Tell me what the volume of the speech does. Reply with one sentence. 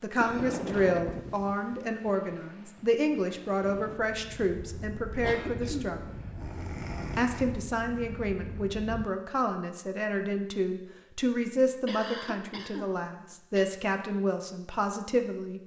The volume of the speech stays about the same.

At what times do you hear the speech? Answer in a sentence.
You can hear the speech from 0.0 to 6.2 s and from 7.2 to 15.6 s.